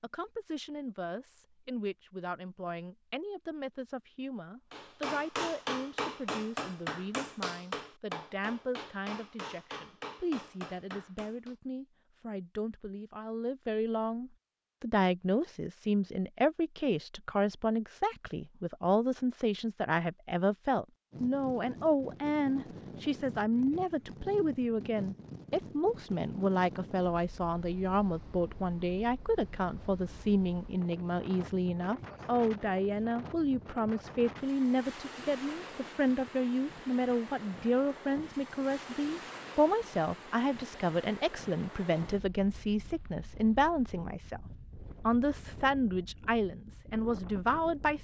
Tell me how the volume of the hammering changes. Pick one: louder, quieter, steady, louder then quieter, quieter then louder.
quieter.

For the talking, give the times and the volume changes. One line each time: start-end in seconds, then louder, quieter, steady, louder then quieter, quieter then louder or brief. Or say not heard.
0.0-44.4 louder
45.0-47.9 brief.